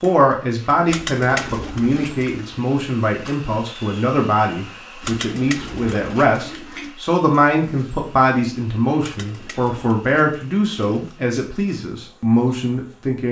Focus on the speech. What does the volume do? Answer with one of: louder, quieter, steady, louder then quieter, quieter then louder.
steady.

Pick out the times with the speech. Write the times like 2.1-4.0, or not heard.
0.0-13.2.